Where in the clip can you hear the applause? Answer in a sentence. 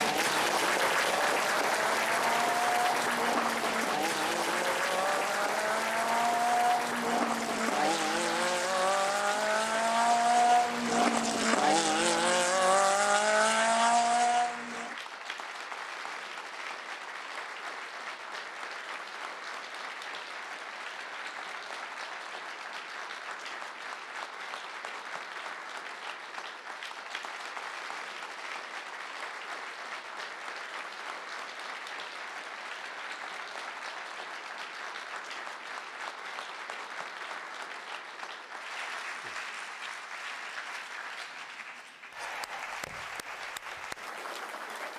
You can hear the applause from 0.0 to 44.9 s.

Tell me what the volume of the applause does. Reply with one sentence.
The volume of the applause goes down.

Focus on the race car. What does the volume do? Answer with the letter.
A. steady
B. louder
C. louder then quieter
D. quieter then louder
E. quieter
B.